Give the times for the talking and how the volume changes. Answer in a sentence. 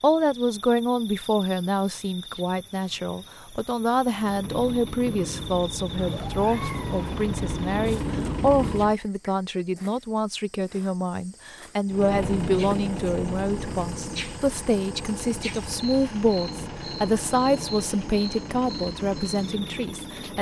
You can hear the talking from 0.0 to 20.3 s, at a steady volume.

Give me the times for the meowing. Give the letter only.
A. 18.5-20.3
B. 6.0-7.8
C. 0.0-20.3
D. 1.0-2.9
B.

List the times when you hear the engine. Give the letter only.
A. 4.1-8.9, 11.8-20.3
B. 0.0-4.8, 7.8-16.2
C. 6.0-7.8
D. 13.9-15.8
A.